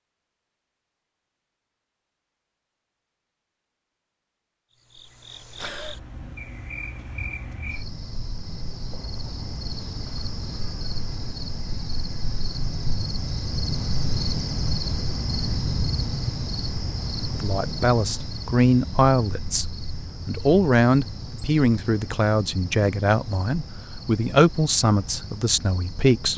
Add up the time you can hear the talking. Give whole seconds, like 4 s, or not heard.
9 s.